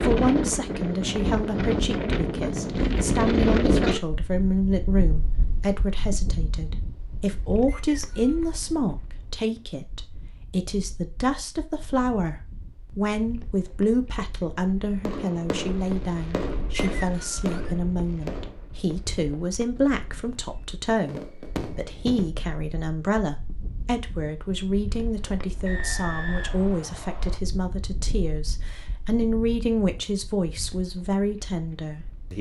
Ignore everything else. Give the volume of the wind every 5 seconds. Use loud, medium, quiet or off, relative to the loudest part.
loud, quiet, quiet, quiet, quiet, quiet, quiet.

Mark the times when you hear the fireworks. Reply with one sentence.
You can hear the fireworks from 15.1 to 22.3 s.